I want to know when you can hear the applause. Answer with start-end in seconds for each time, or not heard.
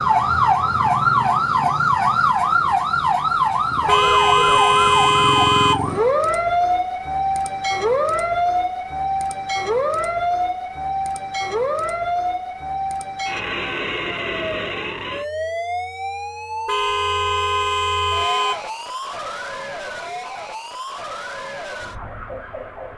not heard.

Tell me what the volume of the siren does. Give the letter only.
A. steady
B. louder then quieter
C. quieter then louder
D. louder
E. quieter
E.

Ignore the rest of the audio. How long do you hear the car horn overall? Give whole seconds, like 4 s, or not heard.
4 s.